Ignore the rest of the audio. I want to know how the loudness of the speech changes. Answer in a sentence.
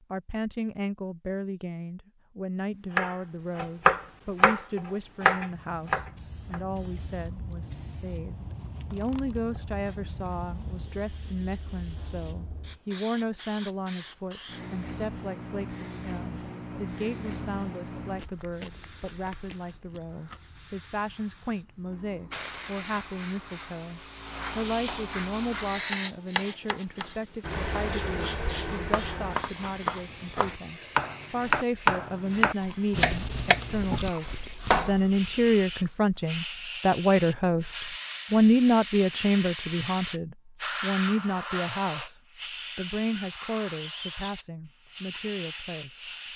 The loudness of the speech goes up.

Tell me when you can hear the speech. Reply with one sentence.
The speech can be heard from 0.0 to 42.1 s and from 42.8 to 46.1 s.